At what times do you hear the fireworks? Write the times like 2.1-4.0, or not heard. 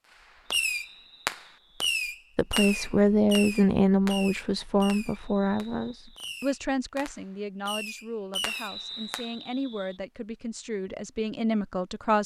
0.5-9.2.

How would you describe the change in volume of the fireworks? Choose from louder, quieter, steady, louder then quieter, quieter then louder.
quieter then louder.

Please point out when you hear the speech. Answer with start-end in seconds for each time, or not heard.
2.4-12.2.